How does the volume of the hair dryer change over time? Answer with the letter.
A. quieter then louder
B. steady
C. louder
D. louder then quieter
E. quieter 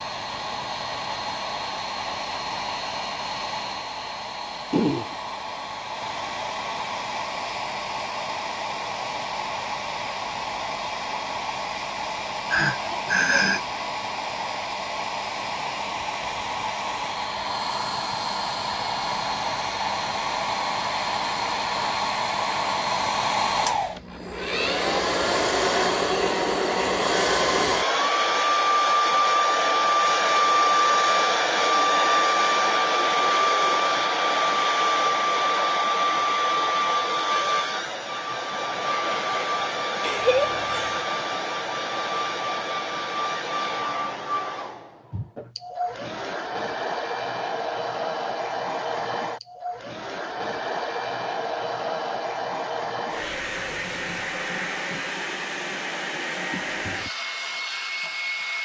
D.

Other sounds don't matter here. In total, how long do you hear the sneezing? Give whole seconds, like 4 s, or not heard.
2 s.